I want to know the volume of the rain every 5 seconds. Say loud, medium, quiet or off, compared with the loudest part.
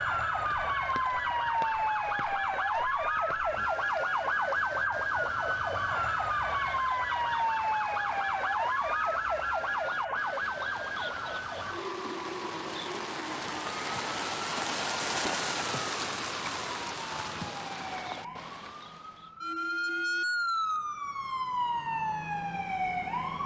quiet, quiet, loud, loud, off.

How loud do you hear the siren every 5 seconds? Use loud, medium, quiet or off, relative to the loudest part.
loud, loud, medium, medium, loud.